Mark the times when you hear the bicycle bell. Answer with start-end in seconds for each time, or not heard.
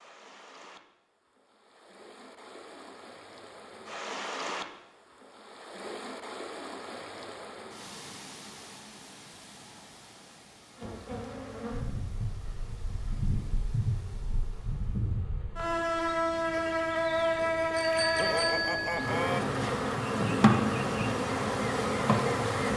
17.8-19.4.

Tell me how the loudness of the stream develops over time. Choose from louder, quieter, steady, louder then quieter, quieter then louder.
louder then quieter.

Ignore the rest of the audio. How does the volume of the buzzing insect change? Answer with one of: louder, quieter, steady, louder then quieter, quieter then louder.
louder.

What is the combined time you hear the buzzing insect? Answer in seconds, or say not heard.
12 s.